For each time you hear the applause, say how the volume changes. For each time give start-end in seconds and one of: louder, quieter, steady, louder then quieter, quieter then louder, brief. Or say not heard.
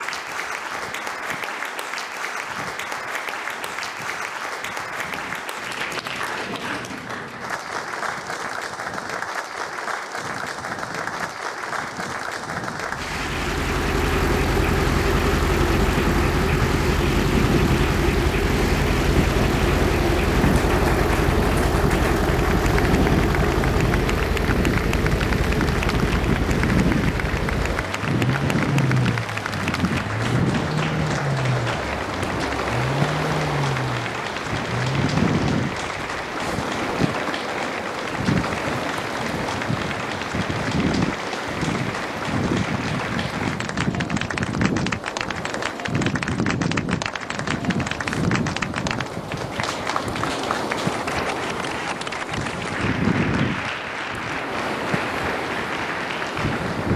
0.0-56.9 steady.